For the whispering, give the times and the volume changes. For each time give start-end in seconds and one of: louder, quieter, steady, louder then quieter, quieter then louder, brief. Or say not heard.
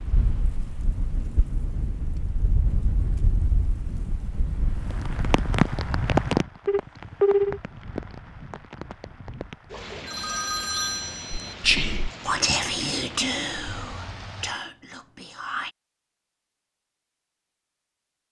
11.3-15.8 quieter.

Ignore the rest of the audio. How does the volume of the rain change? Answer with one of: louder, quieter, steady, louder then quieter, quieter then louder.
louder then quieter.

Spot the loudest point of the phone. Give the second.
7 s.